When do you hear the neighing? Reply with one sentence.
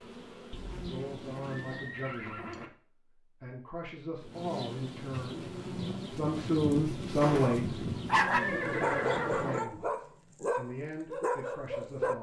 The neighing can be heard from 0.7 to 2.7 s and from 8.2 to 9.6 s.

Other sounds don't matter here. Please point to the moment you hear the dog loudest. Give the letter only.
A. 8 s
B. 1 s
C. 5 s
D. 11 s
A.